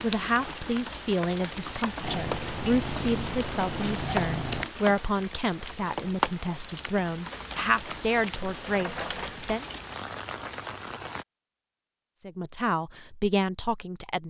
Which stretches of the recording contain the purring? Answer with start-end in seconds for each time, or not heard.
2.0-4.7.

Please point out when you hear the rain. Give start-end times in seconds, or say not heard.
0.0-11.2.